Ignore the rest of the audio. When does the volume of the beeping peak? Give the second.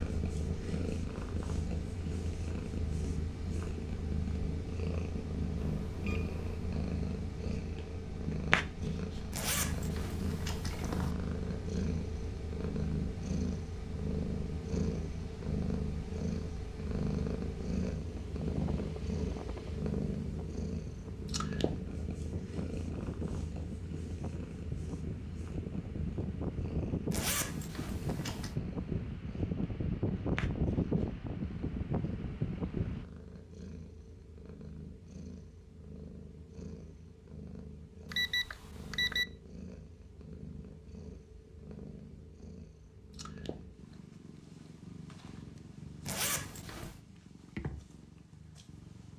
39 s.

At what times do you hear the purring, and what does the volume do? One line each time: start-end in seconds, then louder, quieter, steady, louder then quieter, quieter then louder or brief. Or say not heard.
0.0-49.1 quieter.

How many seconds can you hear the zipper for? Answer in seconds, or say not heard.
4 s.